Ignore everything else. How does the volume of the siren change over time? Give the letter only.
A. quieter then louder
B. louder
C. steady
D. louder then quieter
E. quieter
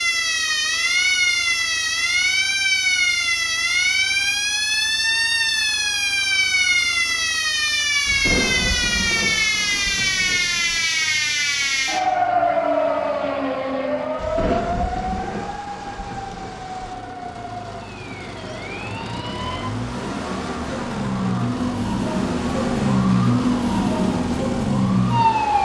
A.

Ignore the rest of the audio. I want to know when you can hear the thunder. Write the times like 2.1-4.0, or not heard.
8.1-10.8, 14.2-16.9.